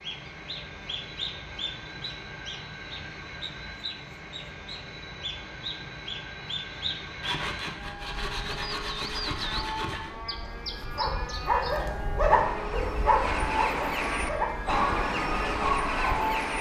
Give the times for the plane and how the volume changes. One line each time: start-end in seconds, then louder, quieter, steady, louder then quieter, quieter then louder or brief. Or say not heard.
0.0-16.5 louder.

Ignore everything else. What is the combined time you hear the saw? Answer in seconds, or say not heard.
3 s.